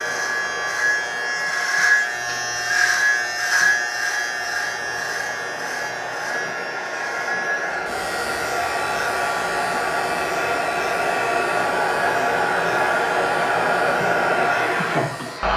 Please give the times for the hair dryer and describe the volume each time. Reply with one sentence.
You can hear the hair dryer from 0.0 to 15.5 s, getting louder.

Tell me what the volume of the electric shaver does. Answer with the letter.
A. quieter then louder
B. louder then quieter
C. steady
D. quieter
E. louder
D.